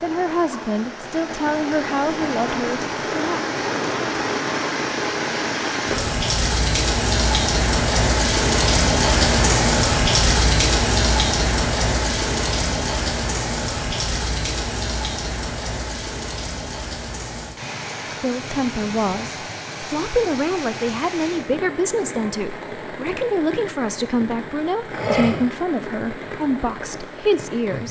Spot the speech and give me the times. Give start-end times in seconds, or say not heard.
0.0-3.5, 18.2-27.8.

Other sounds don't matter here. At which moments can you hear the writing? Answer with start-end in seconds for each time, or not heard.
not heard.